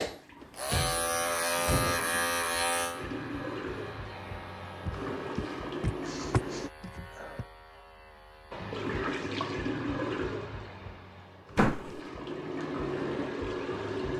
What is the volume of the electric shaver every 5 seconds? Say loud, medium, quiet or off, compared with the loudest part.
loud, quiet, off.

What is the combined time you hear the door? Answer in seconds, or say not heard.
5 s.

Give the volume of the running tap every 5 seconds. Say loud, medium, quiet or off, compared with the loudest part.
medium, loud, loud.